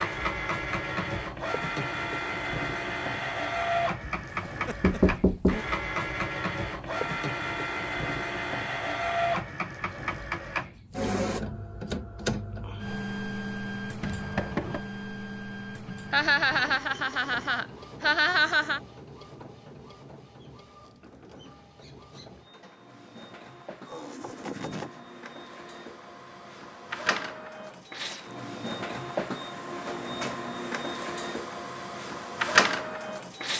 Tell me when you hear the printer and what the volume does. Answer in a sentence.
You can hear the printer from 0.0 to 33.5 s, getting quieter then louder.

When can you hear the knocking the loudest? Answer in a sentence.
The volume of the knocking peaks at 5 seconds.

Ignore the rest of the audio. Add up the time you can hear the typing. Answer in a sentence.
The typing can't be heard in this clip.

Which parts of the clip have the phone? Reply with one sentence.
The phone can't be heard in this clip.